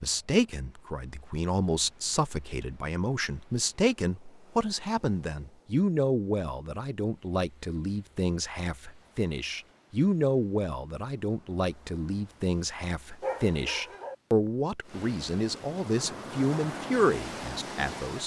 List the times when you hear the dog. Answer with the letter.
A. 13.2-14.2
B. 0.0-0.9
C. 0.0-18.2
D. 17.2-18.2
A.